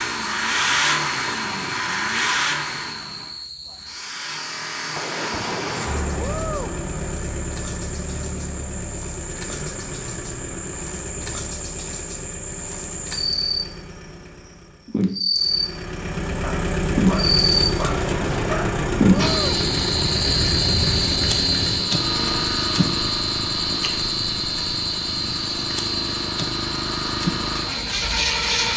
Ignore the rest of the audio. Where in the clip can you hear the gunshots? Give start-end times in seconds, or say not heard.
5.0-6.8, 17.8-19.6.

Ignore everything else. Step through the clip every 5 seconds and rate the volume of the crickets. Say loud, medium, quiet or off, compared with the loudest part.
quiet, quiet, medium, loud, loud, medium.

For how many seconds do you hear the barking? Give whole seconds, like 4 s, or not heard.
2 s.